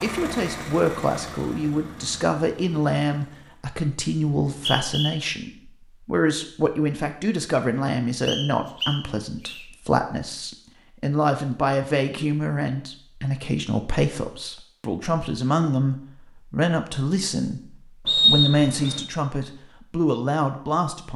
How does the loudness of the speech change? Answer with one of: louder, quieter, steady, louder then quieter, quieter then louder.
steady.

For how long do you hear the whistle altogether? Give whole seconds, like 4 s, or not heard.
3 s.